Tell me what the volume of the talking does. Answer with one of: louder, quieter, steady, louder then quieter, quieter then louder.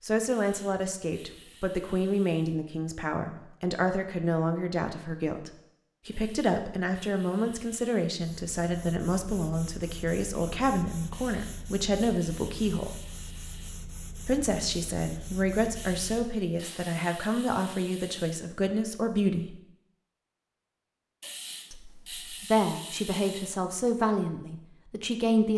steady.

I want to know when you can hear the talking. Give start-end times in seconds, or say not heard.
0.0-12.9, 14.2-19.6, 21.7-25.5.